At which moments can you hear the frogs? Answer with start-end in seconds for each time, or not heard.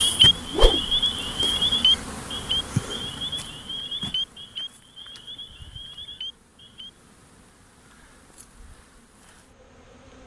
0.0-6.9.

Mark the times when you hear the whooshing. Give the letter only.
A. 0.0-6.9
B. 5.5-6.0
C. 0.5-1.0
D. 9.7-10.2
C.